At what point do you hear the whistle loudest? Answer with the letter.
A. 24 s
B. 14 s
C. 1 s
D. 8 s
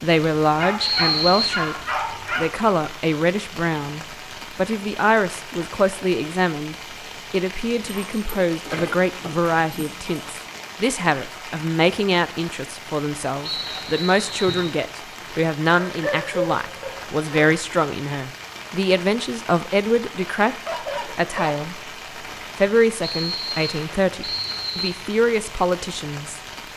C.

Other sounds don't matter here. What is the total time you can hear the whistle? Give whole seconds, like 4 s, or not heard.
4 s.